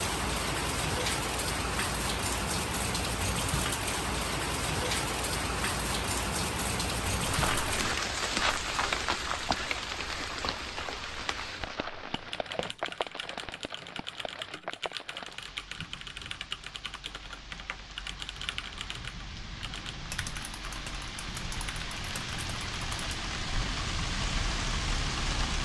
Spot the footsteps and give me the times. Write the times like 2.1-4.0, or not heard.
7.2-13.0.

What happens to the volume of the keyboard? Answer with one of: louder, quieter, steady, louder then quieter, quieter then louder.
steady.